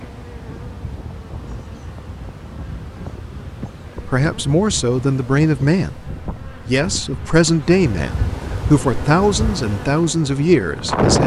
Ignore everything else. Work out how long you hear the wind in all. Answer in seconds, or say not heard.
11 s.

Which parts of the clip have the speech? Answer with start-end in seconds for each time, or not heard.
4.0-11.2.